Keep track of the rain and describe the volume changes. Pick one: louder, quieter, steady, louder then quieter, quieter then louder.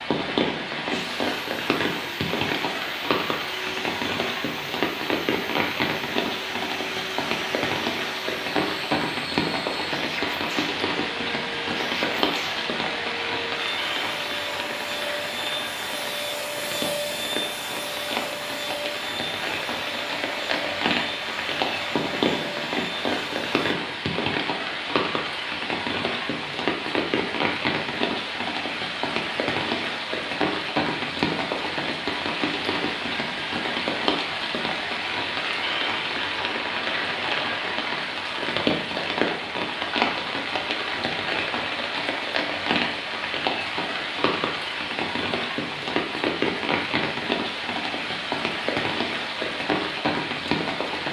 steady.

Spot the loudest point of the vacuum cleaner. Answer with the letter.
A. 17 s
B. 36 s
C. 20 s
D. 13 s
A.